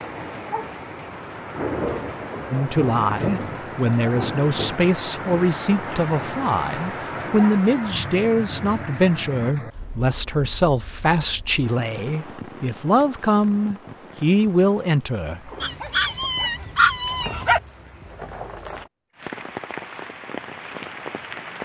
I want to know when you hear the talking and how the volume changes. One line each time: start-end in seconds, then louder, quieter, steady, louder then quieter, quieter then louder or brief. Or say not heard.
2.5-15.5 steady.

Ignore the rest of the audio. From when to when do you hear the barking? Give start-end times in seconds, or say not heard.
15.6-17.6.